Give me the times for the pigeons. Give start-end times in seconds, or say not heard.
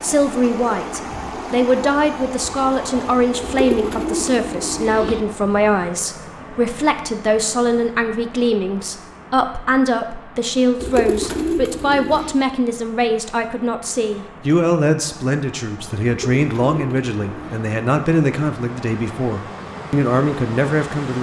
3.4-5.2, 10.8-12.3, 16.1-17.6.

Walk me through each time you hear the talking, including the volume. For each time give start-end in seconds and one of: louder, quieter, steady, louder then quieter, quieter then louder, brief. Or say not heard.
0.0-21.1 steady.